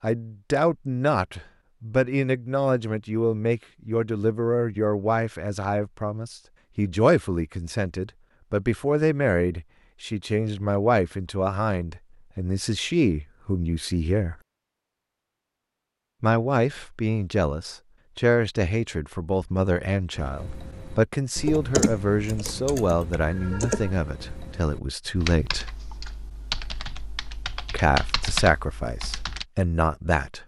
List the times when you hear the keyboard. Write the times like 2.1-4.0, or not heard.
20.1-29.4.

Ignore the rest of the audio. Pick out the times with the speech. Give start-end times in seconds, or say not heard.
0.0-14.3, 16.2-25.7, 27.7-30.4.